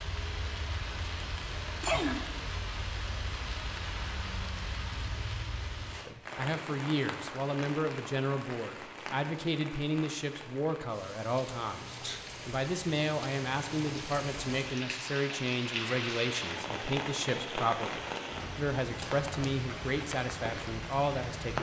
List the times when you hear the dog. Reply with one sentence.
The dog can't be heard in this clip.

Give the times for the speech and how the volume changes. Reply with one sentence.
You can hear the speech from 6.0 to 21.5 s, at a steady volume.